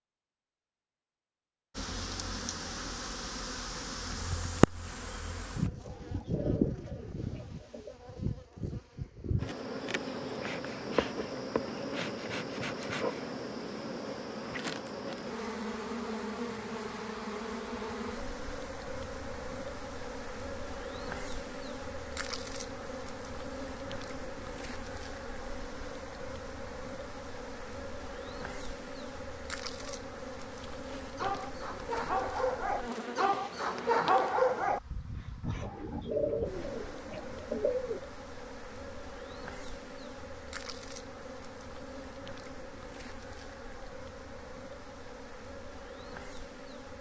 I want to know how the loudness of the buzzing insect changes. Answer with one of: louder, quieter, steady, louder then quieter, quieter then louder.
quieter.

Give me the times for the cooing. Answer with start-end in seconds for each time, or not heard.
5.8-8.0, 35.6-38.0.